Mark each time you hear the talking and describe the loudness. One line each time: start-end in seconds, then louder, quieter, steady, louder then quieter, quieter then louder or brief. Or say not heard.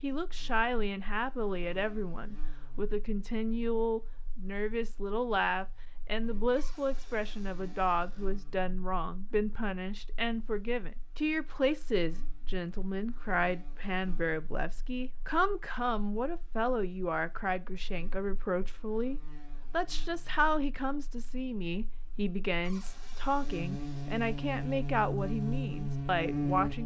0.0-26.8 steady.